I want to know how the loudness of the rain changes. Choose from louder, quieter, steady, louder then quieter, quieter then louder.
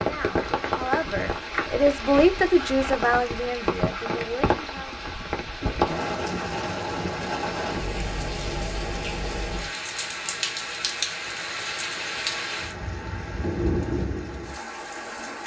steady.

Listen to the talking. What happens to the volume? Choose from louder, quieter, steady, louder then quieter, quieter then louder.
louder then quieter.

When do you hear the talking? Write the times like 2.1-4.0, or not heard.
0.0-5.0.